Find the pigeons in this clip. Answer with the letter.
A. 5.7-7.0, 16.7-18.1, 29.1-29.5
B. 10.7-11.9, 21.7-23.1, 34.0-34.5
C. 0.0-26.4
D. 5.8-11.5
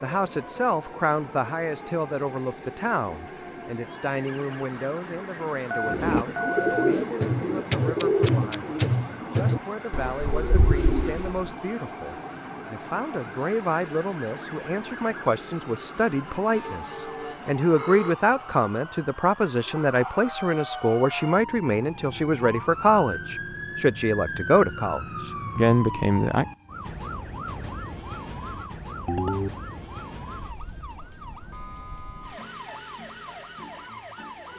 D.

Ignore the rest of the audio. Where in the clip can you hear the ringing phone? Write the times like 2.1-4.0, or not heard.
5.7-7.0, 16.7-18.1, 29.1-29.5.